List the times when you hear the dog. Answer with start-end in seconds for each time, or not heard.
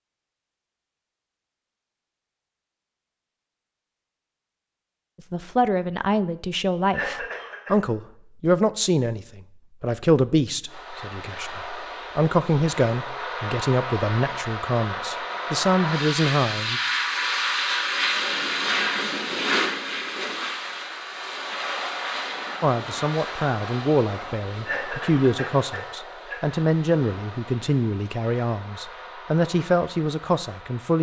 not heard.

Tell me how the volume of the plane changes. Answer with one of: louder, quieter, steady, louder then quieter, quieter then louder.
louder then quieter.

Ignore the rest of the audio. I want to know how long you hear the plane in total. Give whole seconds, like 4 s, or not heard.
20 s.